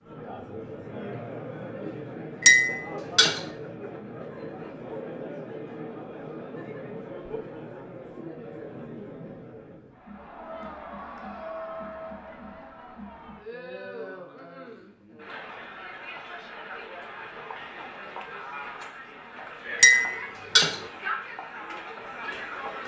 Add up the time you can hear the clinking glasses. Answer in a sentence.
The clinking glasses can be heard for 2 seconds in total.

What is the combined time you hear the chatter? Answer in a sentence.
You can hear the chatter for 23 seconds altogether.